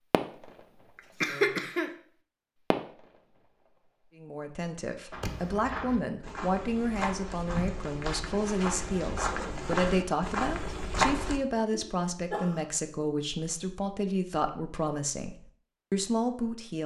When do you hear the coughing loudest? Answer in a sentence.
The loudest moment of the coughing is at 1 second.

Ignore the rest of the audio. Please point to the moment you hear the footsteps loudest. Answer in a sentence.
The loudest moment of the footsteps is at 11 seconds.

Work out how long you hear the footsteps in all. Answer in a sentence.
The footsteps can be heard for 6 seconds in total.